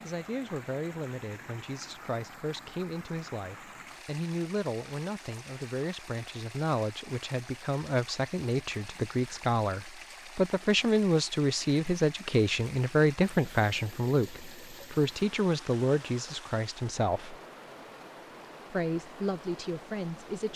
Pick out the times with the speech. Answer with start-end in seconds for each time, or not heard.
0.0-17.4, 18.7-20.5.